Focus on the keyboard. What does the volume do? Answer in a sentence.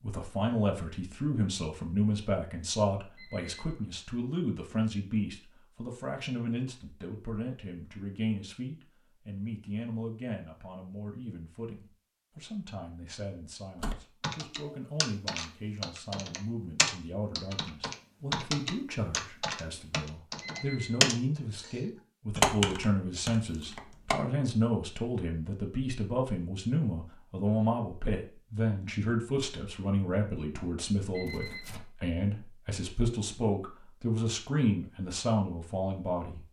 The loudness of the keyboard goes up.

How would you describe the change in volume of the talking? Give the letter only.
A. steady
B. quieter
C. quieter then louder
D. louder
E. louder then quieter
C.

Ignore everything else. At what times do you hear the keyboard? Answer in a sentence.
You can hear the keyboard from 13.8 to 24.1 s.